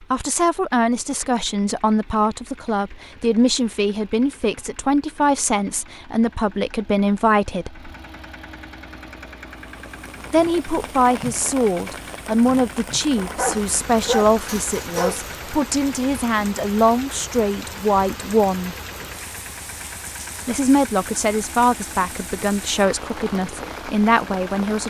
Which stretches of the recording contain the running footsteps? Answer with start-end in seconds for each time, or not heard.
not heard.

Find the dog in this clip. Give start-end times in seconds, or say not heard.
13.2-15.3.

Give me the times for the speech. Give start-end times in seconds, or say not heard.
0.1-7.9, 10.3-18.8, 20.4-24.8.